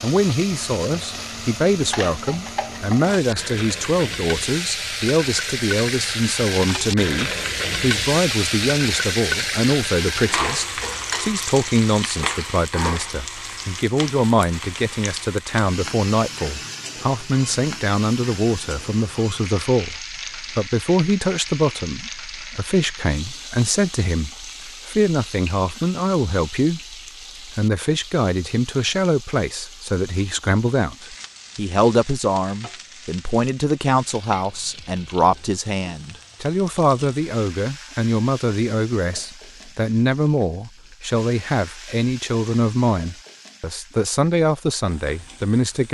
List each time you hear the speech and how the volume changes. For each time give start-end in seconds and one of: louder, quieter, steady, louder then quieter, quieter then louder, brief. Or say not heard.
0.0-45.8 steady.